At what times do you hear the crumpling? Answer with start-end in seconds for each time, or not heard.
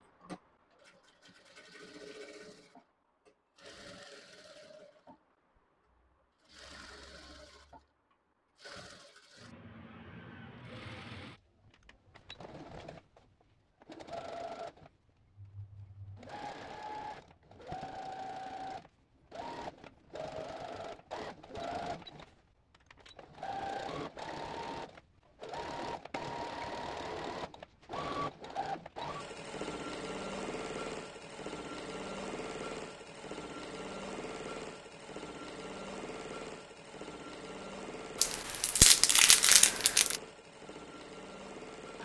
38.2-40.2.